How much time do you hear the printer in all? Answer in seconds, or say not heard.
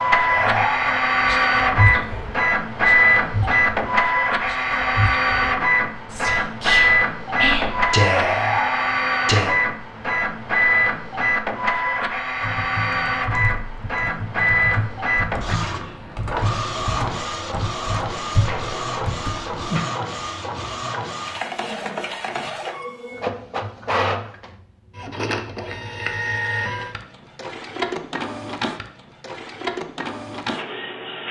31 s.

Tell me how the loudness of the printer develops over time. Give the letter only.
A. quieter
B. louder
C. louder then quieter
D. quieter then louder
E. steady
A.